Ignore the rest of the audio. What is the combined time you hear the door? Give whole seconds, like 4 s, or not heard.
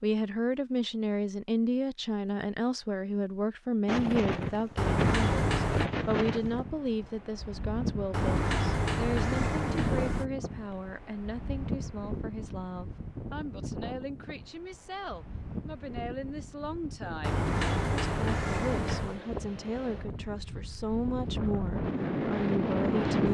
5 s.